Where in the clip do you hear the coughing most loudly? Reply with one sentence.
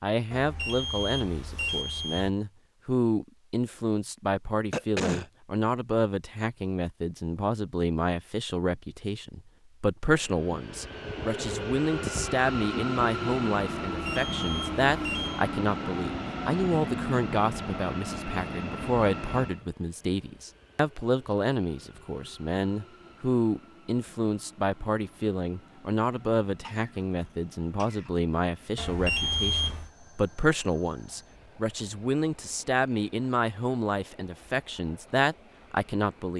The loudest moment of the coughing is at 5 seconds.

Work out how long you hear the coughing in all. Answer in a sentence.
You can hear the coughing for 2 seconds altogether.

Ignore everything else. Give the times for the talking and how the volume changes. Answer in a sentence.
The talking can be heard from 0.0 to 36.3 s, at a steady volume.